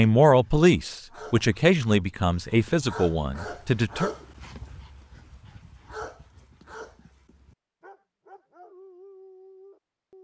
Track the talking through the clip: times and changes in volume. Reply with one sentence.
The talking can be heard from 0.0 to 4.1 s, getting quieter.